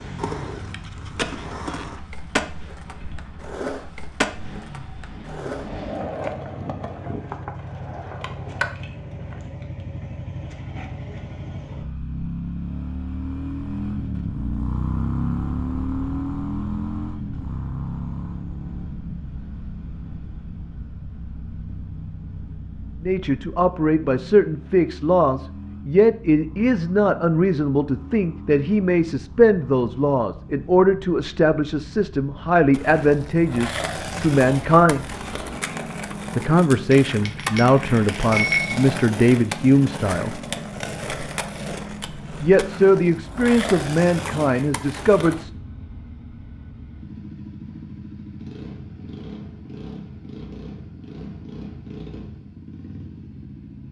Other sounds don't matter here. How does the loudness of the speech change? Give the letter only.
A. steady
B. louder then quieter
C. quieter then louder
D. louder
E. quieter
A.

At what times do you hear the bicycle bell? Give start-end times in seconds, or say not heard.
36.9-38.9.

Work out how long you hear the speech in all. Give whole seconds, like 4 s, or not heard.
19 s.